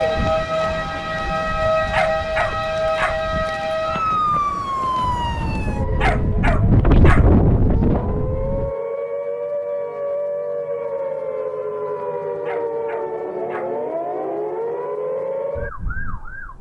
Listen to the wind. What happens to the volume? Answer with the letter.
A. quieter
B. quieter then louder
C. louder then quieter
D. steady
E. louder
E.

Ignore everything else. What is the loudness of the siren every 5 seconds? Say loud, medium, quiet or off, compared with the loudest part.
loud, medium, loud, medium.